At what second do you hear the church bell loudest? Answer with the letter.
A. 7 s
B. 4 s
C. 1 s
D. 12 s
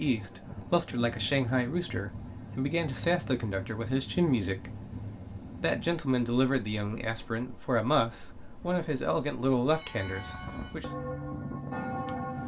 D.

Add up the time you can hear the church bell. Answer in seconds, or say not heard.
3 s.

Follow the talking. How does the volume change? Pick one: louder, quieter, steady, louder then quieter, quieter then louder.
steady.